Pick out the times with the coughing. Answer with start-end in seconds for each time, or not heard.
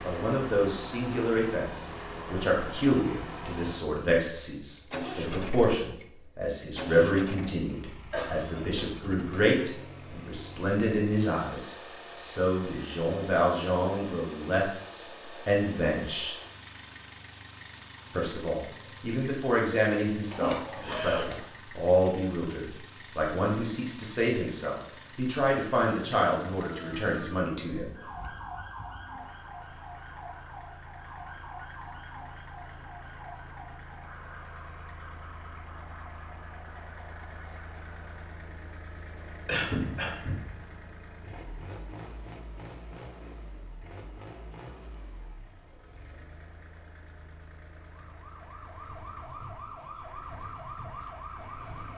7.7-9.6, 20.3-21.4, 39.5-40.5.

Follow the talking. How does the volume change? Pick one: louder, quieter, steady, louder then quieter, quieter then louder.
steady.